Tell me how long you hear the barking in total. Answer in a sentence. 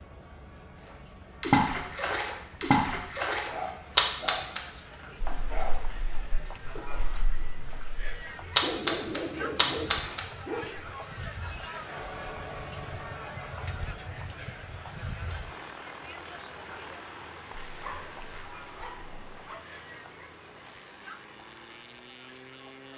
You can hear the barking for 7 seconds altogether.